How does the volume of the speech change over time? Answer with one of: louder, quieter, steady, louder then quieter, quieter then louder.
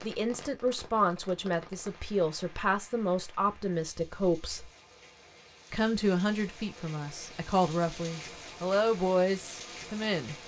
steady.